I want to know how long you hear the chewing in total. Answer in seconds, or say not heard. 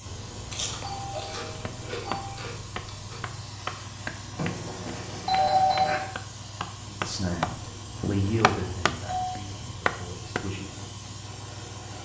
3 s.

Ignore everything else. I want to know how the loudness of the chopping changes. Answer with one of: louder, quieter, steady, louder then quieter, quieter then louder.
louder.